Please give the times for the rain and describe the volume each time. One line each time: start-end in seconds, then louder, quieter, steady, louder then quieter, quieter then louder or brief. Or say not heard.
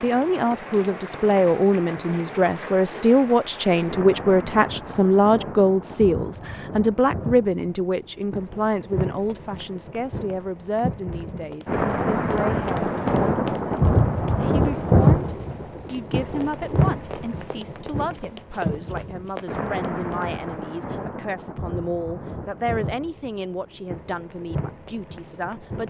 0.0-25.8 louder then quieter.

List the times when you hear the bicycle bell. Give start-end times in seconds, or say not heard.
not heard.